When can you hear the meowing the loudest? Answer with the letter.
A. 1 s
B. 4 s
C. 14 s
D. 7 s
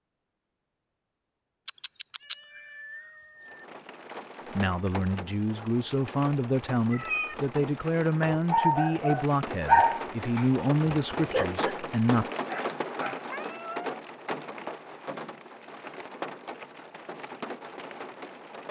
D.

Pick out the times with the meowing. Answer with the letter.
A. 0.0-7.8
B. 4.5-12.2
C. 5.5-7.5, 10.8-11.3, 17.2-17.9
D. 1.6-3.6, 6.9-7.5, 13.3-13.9
D.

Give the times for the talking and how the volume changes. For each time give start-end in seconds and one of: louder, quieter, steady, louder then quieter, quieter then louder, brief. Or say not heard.
4.5-12.2 steady.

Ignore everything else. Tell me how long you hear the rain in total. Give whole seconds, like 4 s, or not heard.
15 s.